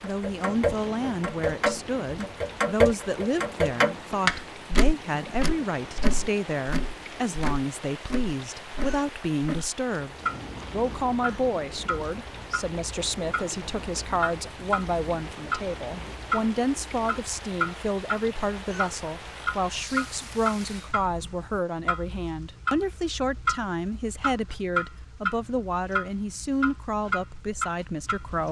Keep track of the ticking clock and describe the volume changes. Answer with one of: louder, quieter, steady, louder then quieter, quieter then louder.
quieter.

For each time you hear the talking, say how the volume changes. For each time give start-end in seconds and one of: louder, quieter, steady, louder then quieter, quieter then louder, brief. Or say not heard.
0.0-28.4 steady.